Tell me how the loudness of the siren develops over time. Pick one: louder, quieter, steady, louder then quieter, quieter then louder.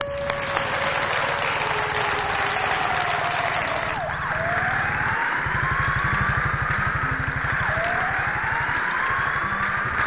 steady.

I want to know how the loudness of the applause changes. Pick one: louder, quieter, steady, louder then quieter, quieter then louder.
steady.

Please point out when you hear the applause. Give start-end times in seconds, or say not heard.
0.0-10.0.